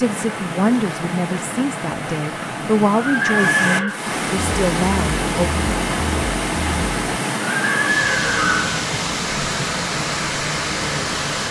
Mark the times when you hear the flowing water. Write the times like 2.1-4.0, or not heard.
0.0-11.4.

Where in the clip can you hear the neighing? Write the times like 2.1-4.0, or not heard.
3.0-4.0, 7.6-8.8.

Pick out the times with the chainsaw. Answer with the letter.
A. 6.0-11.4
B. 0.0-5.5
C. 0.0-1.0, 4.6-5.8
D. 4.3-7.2
D.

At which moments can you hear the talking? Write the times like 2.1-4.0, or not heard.
0.0-5.5.